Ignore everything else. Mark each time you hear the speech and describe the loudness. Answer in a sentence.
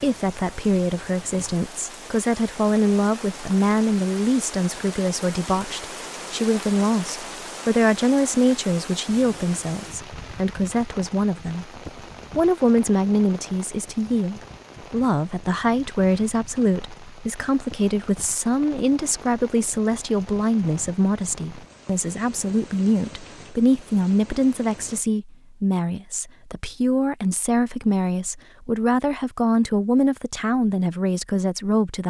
The speech can be heard from 0.0 to 32.0 s, at a steady volume.